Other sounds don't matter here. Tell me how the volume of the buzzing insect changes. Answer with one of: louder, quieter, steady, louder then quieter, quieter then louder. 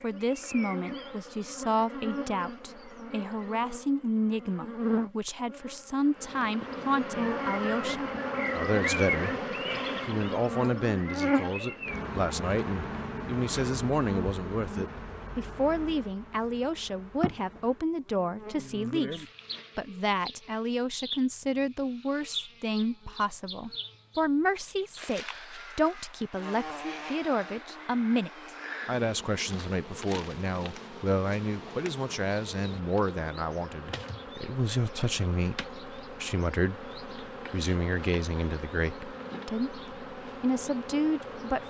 quieter.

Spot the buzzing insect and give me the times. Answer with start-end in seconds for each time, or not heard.
0.0-41.6.